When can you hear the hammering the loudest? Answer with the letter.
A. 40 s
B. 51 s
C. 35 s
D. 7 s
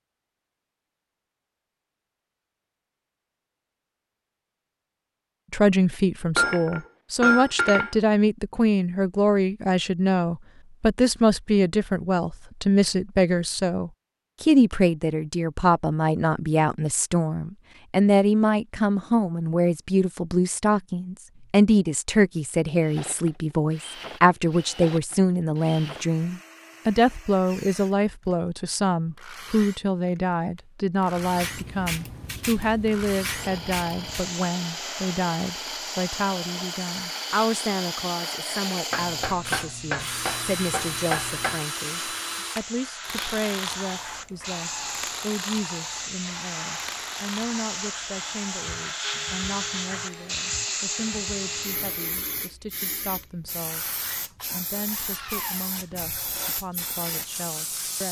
D.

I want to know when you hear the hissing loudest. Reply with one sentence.
The volume of the hissing peaks at 51 seconds.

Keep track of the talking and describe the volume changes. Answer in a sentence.
The loudness of the talking goes down.